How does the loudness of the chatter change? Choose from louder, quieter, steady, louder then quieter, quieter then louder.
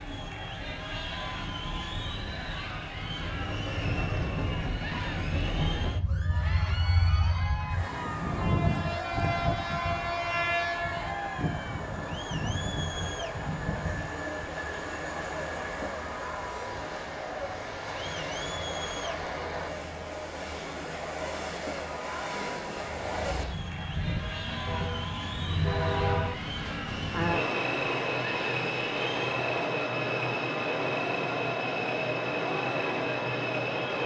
steady.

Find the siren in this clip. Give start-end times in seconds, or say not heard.
not heard.